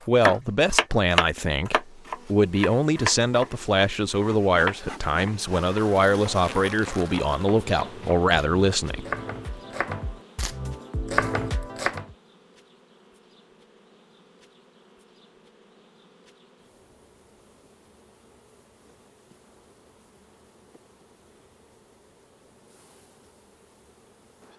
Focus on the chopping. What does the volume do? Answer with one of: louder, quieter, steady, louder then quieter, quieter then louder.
quieter then louder.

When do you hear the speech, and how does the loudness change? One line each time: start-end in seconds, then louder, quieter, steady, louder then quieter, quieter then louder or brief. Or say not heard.
0.1-9.1 steady.